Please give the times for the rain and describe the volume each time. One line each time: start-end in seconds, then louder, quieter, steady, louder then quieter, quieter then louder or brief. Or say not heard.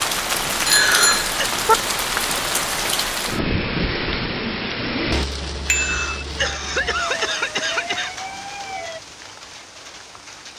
0.0-10.5 quieter.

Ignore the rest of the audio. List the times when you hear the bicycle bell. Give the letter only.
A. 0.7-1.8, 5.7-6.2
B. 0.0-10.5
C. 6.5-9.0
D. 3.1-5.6
A.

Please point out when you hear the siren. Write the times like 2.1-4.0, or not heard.
6.5-9.0.